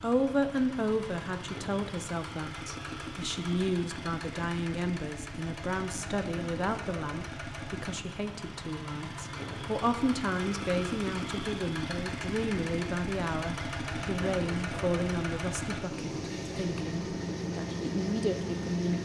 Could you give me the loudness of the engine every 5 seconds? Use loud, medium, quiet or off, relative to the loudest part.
medium, medium, loud, loud.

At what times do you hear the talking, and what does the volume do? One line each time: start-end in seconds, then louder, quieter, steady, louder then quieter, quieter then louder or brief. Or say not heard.
0.0-19.0 steady.